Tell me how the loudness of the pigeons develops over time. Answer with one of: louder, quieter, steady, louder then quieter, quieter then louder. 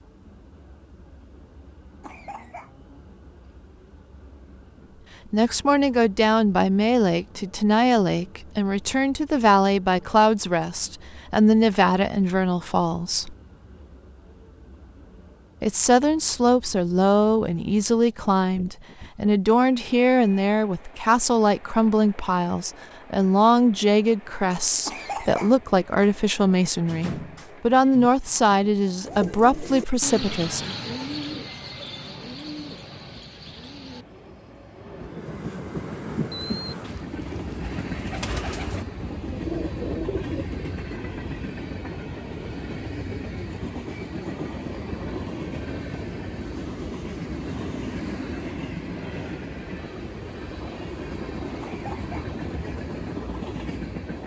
quieter then louder.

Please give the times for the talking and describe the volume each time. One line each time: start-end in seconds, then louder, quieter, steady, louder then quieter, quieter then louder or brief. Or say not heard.
5.3-13.3 steady
15.6-30.8 steady.